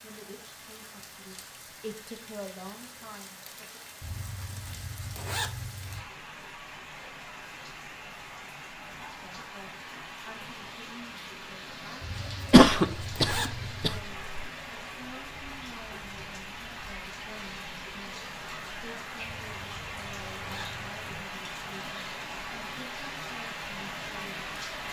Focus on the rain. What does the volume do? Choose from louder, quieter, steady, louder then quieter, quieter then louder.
louder.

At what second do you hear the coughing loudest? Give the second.
13 s.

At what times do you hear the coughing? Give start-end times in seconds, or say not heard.
12.5-14.5.